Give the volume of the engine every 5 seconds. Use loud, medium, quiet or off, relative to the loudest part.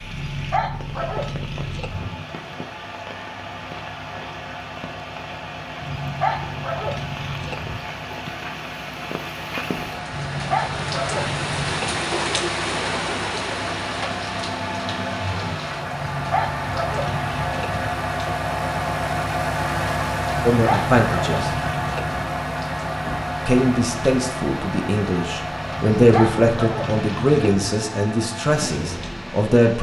medium, medium, medium, loud, loud, medium.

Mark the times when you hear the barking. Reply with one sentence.
You can hear the barking from 0.1 to 2.1 s, from 5.8 to 7.8 s, from 10.1 to 12.0 s, from 15.9 to 17.9 s, from 20.5 to 22.2 s and from 25.9 to 27.6 s.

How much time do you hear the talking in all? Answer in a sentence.
The talking can be heard for 7 seconds in total.